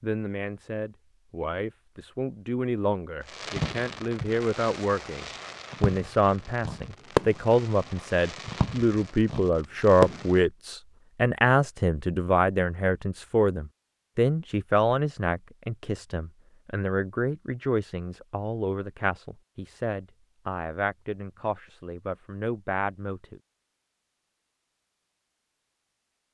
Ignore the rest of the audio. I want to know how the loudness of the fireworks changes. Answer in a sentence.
The volume of the fireworks goes up, then down.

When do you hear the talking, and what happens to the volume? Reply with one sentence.
The talking can be heard from 0.0 to 23.4 s, getting louder then quieter.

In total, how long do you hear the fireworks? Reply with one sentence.
You can hear the fireworks for 7 seconds altogether.